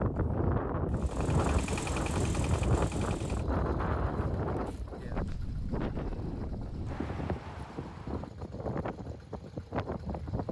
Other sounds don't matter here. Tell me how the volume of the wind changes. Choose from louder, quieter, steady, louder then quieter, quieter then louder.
quieter.